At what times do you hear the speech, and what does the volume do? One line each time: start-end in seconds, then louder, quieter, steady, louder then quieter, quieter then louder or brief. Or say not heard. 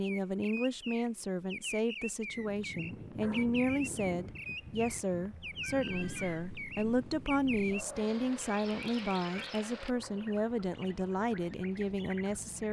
0.0-12.6 steady.